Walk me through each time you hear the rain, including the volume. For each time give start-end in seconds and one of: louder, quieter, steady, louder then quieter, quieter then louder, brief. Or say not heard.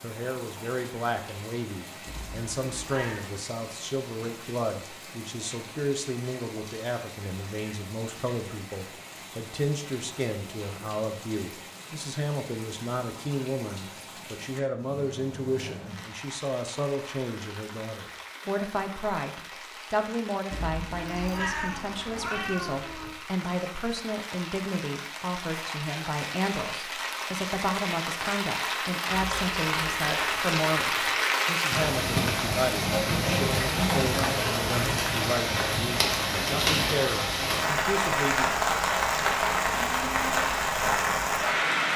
0.0-41.9 louder.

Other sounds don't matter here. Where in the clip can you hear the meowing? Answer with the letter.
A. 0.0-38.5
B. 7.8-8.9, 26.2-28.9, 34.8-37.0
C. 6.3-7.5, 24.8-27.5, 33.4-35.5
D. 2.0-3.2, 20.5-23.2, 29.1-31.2
D.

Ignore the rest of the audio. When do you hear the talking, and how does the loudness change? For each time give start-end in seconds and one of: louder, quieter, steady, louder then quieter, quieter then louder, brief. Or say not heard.
0.0-38.5 steady.